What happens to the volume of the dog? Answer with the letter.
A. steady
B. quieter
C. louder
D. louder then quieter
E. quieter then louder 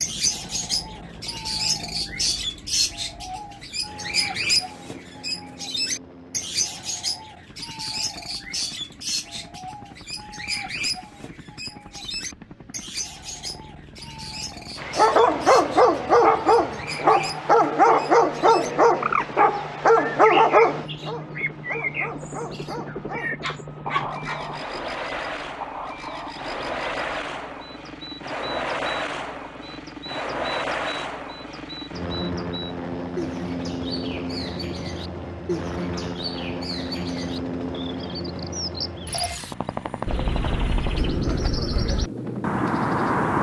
B.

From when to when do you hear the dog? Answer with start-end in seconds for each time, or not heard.
14.8-24.4.